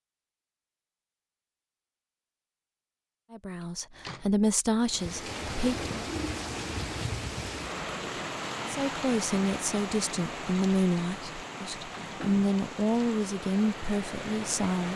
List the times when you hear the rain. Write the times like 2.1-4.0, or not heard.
4.8-14.9.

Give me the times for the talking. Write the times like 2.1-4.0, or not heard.
3.3-5.9, 8.7-14.9.